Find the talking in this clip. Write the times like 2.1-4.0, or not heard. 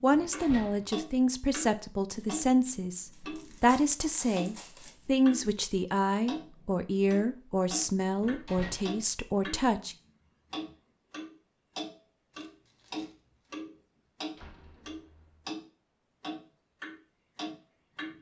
0.0-9.9.